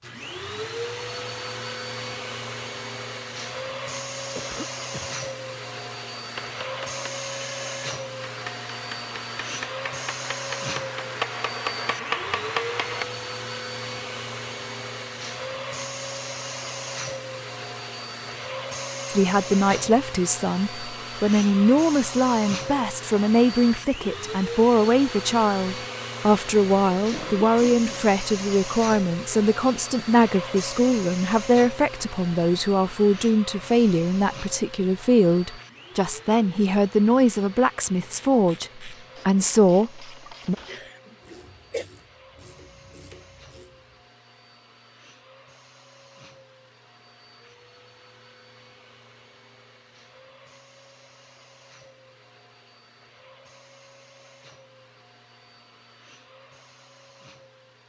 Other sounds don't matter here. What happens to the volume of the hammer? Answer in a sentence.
The loudness of the hammer goes up.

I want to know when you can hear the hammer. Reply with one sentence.
The hammer can be heard from 6.3 to 13.1 s.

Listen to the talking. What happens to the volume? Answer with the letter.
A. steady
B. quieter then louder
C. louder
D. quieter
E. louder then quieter
A.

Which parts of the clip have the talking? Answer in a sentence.
The talking can be heard from 19.1 to 40.5 s.